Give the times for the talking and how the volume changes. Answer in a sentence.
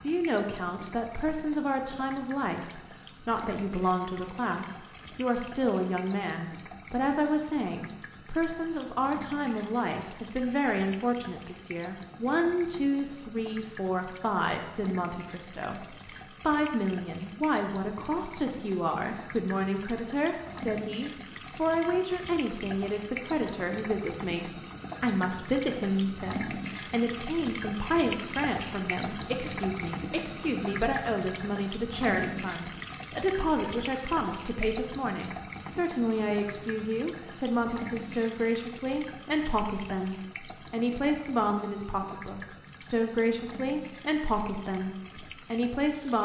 You can hear the talking from 0.0 to 46.2 s, at a steady volume.